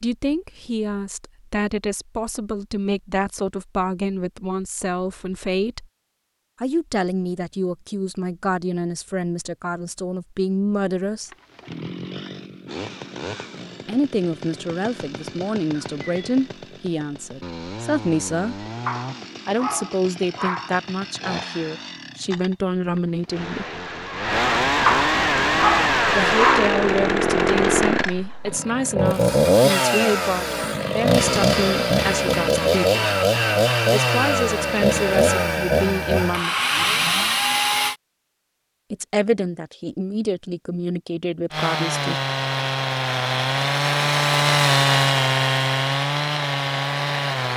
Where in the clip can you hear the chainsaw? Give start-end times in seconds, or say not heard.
11.2-38.0, 41.5-47.5.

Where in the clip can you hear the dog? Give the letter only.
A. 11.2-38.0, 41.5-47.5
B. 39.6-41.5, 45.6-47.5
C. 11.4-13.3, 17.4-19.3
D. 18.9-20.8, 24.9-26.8
D.